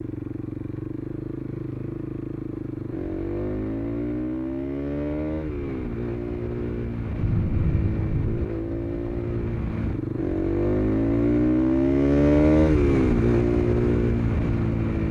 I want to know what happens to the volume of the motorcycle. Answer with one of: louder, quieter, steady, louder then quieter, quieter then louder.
louder.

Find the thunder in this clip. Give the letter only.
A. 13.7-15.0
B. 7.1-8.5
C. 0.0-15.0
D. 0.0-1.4
B.